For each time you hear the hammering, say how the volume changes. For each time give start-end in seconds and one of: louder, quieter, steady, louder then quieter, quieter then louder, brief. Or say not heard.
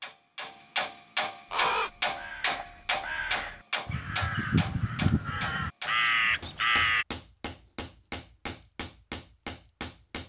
0.0-10.2 quieter.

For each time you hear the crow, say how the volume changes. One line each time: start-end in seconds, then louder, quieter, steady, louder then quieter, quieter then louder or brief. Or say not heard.
1.5-7.0 louder.